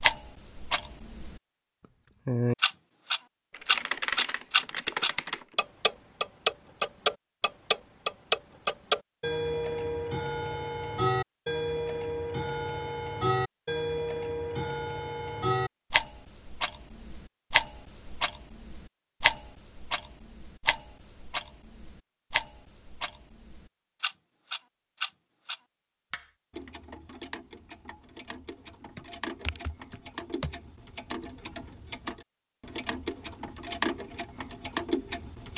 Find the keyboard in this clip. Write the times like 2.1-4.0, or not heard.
3.5-5.5, 28.9-30.6.